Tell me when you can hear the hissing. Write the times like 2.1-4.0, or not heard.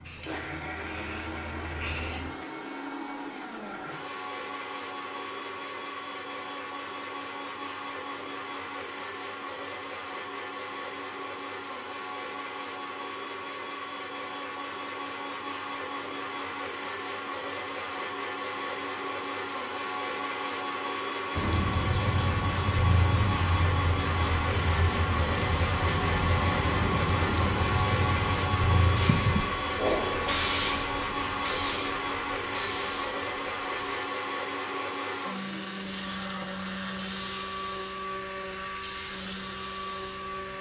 0.0-2.3, 21.4-40.5.